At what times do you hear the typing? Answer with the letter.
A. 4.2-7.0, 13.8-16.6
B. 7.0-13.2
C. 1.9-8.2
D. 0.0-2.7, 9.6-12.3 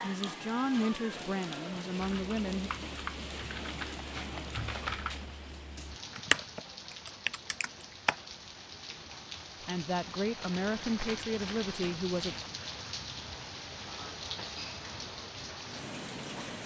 C.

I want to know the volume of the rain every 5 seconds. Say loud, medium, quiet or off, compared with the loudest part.
loud, medium, loud, loud.